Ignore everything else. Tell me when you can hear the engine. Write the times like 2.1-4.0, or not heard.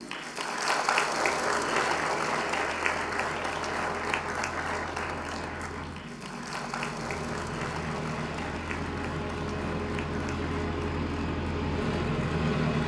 0.0-12.8.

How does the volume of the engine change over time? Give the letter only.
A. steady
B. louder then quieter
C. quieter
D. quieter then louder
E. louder
E.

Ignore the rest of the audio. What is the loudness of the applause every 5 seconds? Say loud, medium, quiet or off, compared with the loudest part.
loud, medium, quiet.